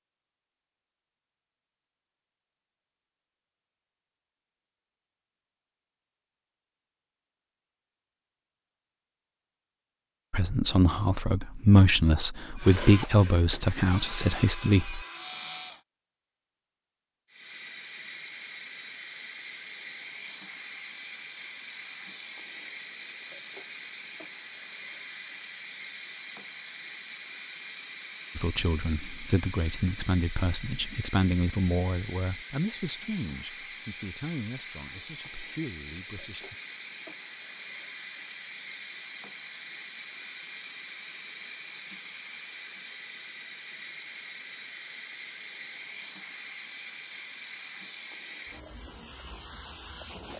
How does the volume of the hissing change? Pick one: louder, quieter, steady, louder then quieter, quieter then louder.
steady.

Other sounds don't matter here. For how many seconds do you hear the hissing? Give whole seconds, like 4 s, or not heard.
33 s.